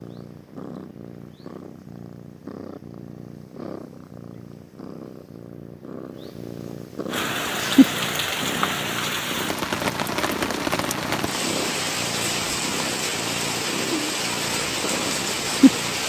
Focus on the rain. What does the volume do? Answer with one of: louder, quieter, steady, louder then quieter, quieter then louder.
steady.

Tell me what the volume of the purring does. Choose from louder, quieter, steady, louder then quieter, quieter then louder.
louder then quieter.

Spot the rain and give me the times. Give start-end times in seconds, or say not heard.
7.0-16.0.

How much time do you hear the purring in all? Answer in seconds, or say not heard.
16 s.